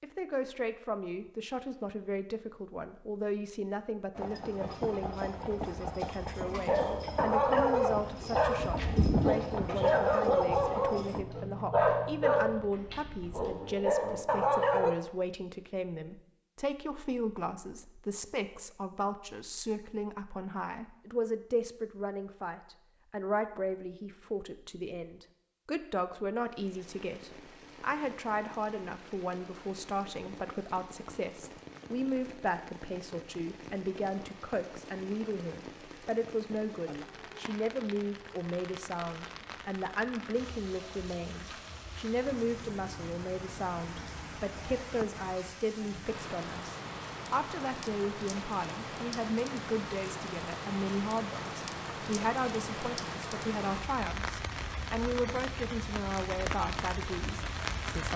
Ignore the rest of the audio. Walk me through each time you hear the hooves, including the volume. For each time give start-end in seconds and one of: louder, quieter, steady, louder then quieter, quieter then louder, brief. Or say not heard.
4.2-11.2 louder then quieter.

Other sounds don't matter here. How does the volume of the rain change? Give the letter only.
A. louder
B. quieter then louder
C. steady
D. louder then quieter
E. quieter
A.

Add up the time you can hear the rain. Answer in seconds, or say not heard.
32 s.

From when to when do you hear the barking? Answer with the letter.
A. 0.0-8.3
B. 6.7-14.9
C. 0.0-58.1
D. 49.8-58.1
B.